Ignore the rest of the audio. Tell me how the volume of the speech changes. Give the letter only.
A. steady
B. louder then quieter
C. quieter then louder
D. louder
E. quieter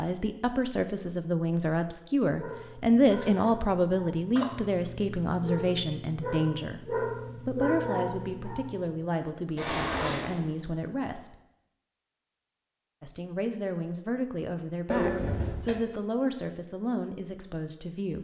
E.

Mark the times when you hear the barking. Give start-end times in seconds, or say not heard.
2.4-8.8.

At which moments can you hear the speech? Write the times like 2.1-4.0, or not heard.
0.0-11.3, 13.0-18.1.